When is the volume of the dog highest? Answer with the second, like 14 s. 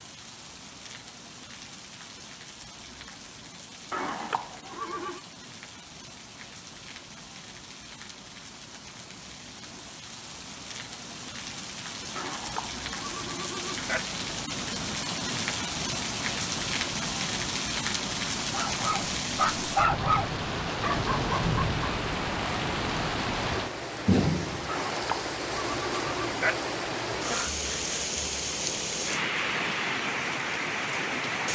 20 s.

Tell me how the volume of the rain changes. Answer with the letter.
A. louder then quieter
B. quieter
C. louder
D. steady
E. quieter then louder
C.